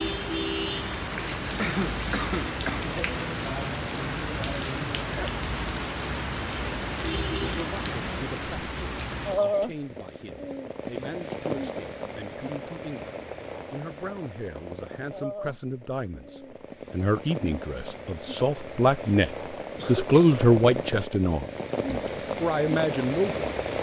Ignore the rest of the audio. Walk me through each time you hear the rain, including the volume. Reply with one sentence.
You can hear the rain from 0.0 to 23.7 s, getting quieter then louder.